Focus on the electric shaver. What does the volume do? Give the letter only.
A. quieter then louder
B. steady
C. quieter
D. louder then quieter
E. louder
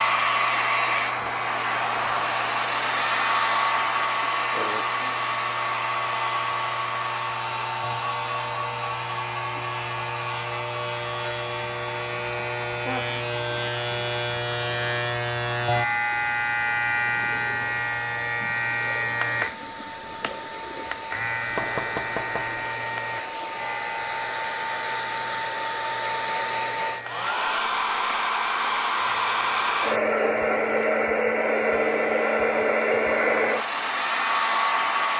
D.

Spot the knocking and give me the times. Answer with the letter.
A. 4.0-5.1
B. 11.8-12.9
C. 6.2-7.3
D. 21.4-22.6
D.